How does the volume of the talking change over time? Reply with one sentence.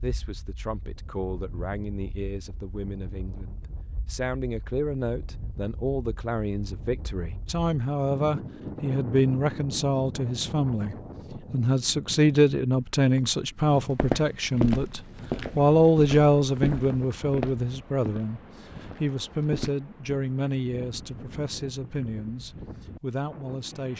The loudness of the talking goes up, then down.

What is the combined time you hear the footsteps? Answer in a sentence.
You can hear the footsteps for 6 seconds altogether.